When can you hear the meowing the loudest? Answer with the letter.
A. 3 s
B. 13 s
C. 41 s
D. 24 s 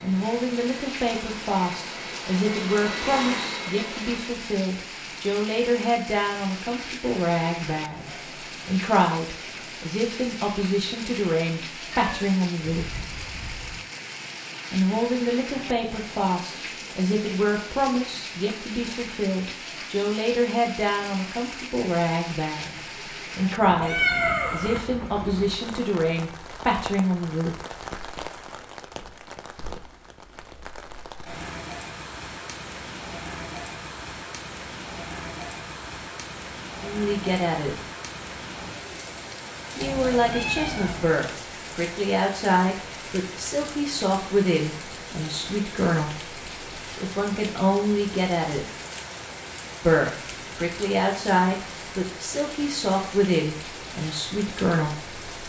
D.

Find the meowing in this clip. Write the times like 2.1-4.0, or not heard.
11.9-13.8, 23.8-24.8, 39.8-41.1.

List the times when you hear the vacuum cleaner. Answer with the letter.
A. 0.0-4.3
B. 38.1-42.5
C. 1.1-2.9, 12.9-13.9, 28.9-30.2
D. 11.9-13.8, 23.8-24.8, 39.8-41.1
A.